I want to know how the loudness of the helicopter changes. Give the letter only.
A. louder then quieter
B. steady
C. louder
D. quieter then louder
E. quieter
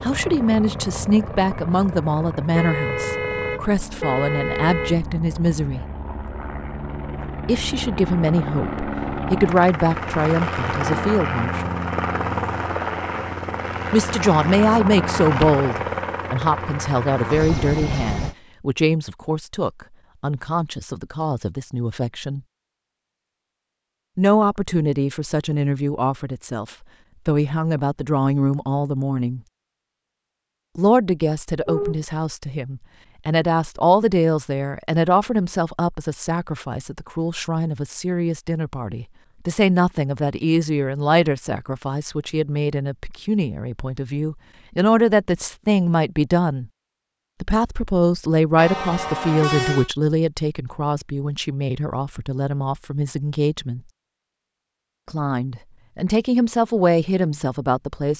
C.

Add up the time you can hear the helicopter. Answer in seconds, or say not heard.
18 s.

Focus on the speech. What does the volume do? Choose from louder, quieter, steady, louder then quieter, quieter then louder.
steady.